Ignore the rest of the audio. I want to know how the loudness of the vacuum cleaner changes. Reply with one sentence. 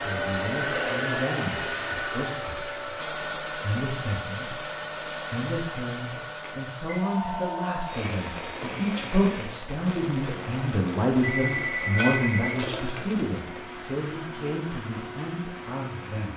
The loudness of the vacuum cleaner goes down.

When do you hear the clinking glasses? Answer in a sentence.
The clinking glasses can be heard from 11.8 to 13.2 s.